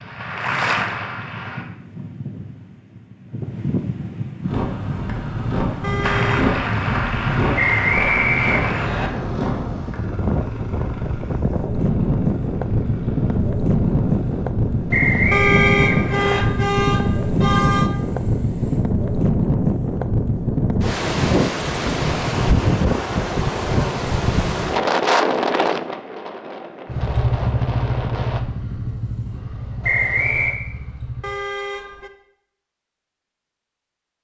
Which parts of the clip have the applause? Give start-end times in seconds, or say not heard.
0.0-1.6, 6.0-8.9.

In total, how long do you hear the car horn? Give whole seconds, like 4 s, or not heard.
4 s.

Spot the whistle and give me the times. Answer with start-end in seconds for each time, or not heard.
7.5-9.1, 14.9-16.4, 29.8-30.6.